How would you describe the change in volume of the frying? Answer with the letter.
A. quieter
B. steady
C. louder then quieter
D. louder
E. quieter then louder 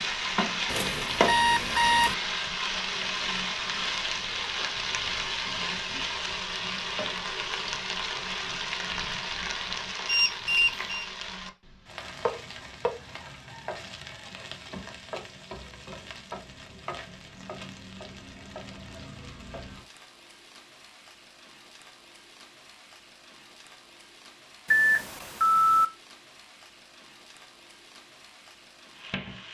A.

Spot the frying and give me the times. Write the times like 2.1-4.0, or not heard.
0.0-29.4.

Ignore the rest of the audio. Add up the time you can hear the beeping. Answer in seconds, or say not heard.
4 s.